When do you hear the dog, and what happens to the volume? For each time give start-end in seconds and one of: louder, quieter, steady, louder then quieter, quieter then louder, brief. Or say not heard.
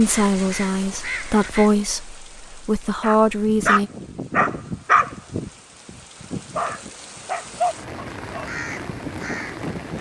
3.0-9.9 quieter.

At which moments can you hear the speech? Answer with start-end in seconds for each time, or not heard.
0.0-3.9.